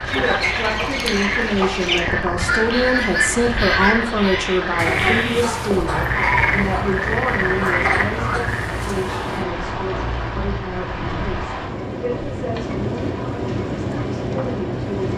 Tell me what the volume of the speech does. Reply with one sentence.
The volume of the speech goes down.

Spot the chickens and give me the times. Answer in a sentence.
The chickens can be heard from 0.1 to 9.4 s.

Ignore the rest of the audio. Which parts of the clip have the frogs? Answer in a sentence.
You can hear the frogs from 0.0 to 8.8 s.